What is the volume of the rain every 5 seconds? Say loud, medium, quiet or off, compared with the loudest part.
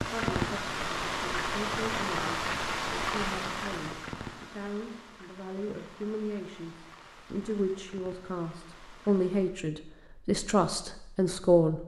loud, quiet, off.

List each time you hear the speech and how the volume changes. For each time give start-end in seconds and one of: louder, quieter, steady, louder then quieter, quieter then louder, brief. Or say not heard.
0.0-11.8 louder.